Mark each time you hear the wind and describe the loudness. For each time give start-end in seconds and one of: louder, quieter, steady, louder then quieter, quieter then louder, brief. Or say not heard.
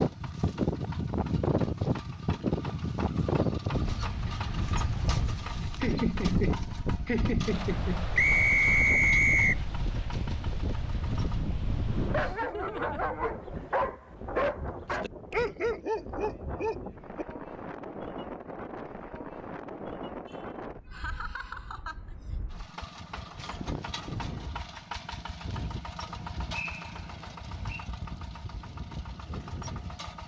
0.0-30.2 quieter.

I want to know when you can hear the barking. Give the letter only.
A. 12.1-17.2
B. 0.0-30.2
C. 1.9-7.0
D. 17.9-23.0
A.